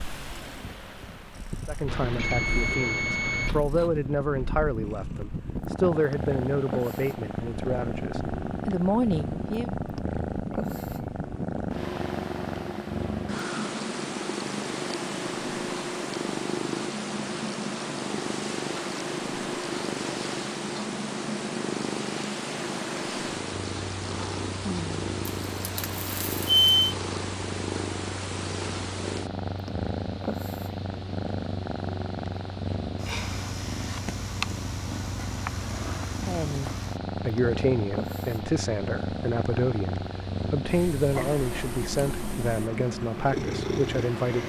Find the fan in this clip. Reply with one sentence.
The fan can be heard from 0.0 to 44.4 s.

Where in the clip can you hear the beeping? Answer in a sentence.
The beeping can be heard from 1.9 to 3.6 s and from 25.2 to 26.9 s.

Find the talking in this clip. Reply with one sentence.
You can hear the talking from 1.6 to 9.7 s and from 36.2 to 44.4 s.